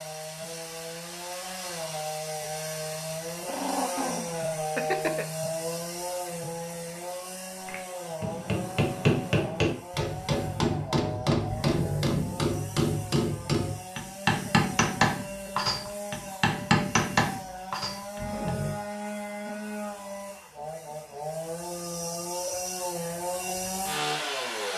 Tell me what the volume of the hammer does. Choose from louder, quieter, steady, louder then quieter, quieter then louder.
steady.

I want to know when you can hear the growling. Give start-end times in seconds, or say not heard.
3.5-5.2, 11.4-12.6, 18.1-18.8.